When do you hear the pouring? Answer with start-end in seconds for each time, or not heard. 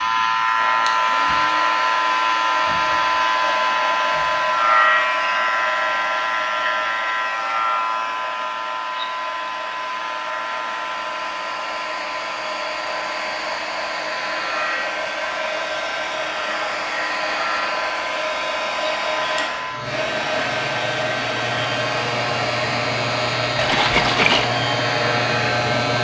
23.6-24.5.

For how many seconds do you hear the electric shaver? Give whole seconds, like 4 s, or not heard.
26 s.